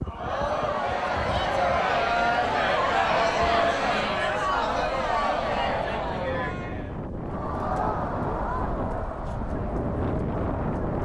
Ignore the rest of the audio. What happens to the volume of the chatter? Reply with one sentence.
The volume of the chatter goes down.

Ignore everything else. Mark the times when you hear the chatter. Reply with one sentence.
You can hear the chatter from 0.0 to 11.0 s.